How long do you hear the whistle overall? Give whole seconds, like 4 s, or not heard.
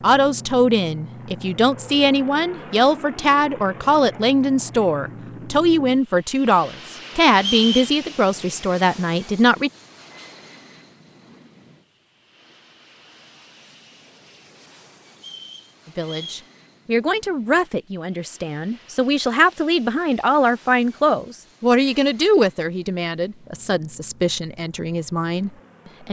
2 s.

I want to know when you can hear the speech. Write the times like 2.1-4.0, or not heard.
0.0-9.7, 15.8-26.0.